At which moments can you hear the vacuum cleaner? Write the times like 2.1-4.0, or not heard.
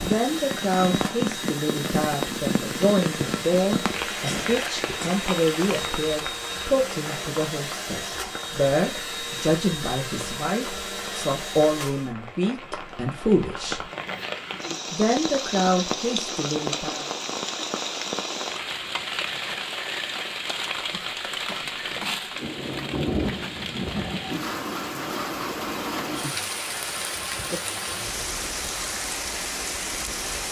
0.0-12.1.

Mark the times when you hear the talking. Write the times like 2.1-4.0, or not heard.
0.0-13.8, 14.9-17.1.